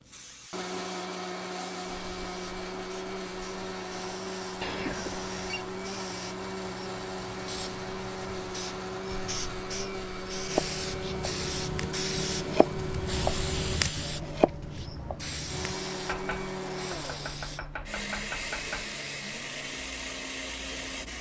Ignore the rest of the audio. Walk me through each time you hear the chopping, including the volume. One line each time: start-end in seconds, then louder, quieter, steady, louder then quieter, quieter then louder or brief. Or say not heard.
10.5-18.9 louder then quieter.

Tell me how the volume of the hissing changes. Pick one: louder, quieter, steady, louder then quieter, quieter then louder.
louder then quieter.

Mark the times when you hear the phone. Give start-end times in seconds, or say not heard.
4.6-5.7.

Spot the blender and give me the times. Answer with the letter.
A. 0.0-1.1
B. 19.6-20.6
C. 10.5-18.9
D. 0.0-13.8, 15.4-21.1
D.